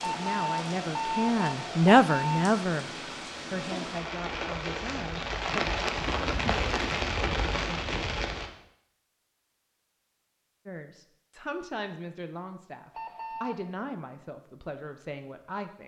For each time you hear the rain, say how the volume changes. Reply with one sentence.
You can hear the rain from 0.0 to 8.5 s, getting louder.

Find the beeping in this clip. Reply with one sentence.
You can hear the beeping from 0.0 to 2.5 s and from 12.9 to 13.8 s.